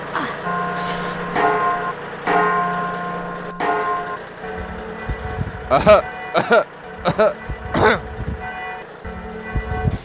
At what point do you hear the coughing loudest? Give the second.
6 s.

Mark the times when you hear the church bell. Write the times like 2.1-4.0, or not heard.
0.5-9.9.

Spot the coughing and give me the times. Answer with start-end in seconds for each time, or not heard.
0.1-1.2, 5.7-8.1.